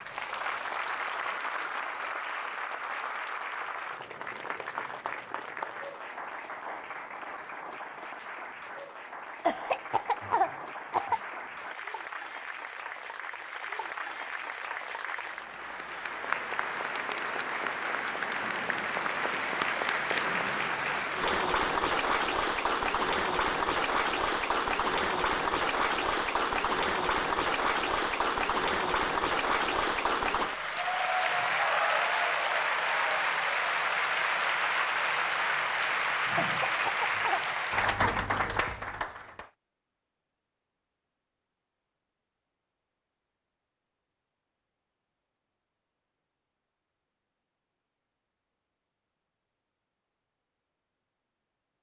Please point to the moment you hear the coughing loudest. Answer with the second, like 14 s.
10 s.